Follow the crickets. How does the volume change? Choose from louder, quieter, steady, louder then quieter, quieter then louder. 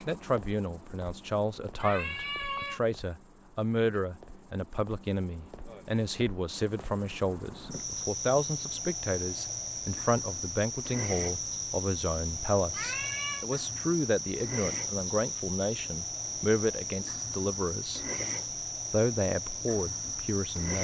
louder.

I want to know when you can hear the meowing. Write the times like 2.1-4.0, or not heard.
1.8-2.8, 12.7-13.4.